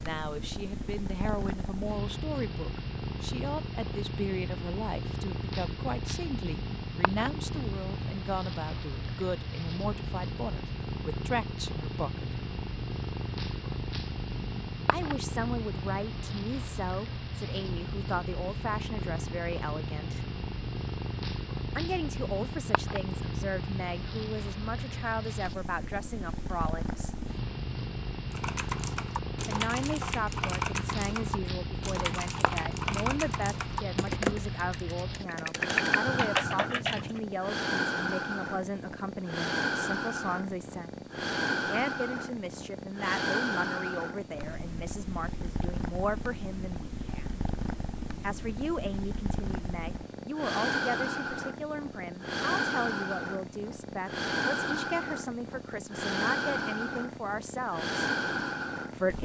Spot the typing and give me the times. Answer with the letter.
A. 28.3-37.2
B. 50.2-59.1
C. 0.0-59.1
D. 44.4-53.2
A.